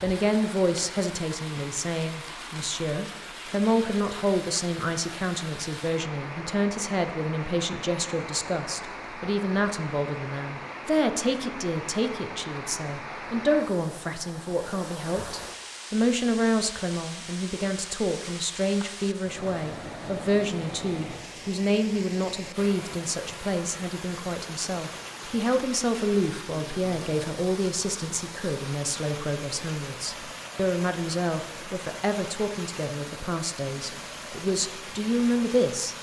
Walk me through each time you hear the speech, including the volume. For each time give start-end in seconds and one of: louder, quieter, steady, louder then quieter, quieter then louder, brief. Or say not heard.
0.0-35.9 steady.